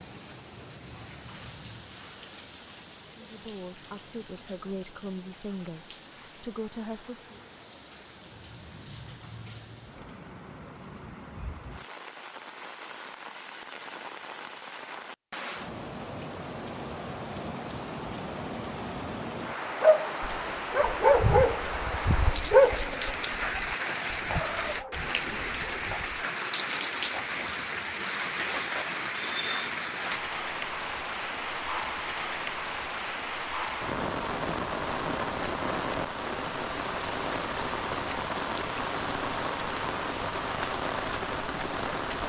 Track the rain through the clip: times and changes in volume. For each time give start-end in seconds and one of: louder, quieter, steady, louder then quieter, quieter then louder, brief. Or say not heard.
0.0-42.2 louder.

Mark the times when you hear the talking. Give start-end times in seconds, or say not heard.
3.1-7.3.